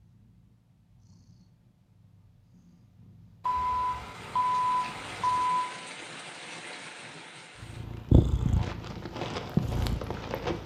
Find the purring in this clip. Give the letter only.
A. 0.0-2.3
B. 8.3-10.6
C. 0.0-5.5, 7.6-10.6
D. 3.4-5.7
C.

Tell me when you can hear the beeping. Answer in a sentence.
The beeping can be heard from 3.4 to 5.7 s.